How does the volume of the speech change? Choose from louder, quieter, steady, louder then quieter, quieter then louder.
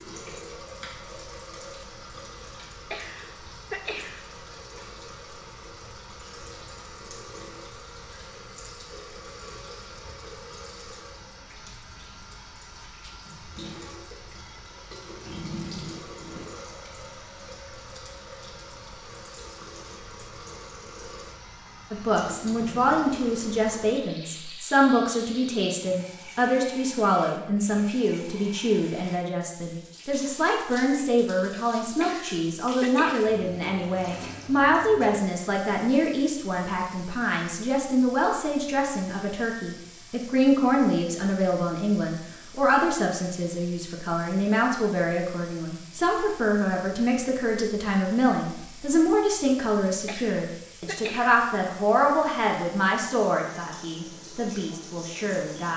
steady.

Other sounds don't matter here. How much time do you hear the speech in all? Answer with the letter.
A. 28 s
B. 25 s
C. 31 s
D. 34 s
D.